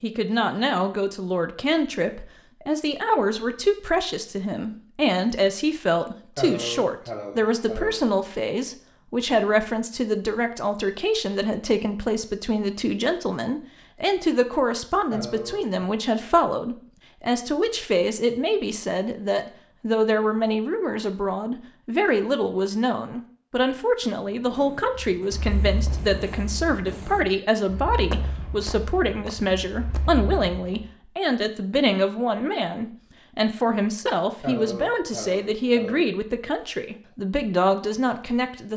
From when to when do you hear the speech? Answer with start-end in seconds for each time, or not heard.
0.0-38.7.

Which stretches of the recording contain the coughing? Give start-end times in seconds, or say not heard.
6.3-8.0, 15.1-15.9, 34.4-36.1.